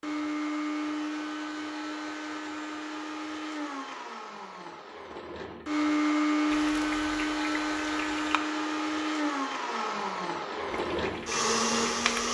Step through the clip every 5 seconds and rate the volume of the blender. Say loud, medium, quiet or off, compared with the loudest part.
medium, loud, loud.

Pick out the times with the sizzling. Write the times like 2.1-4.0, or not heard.
6.5-8.4, 10.7-12.2.